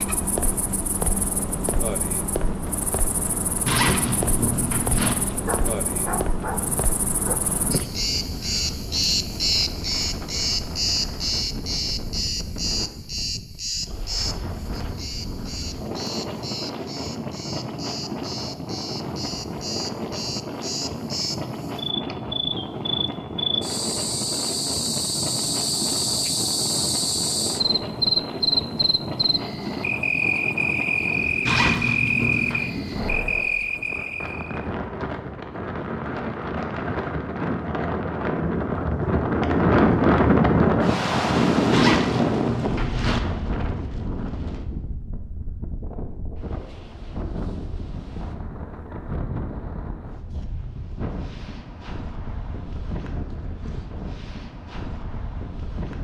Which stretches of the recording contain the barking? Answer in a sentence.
You can hear the barking from 5.5 to 7.3 s.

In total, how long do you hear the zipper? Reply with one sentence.
You can hear the zipper for 4 seconds altogether.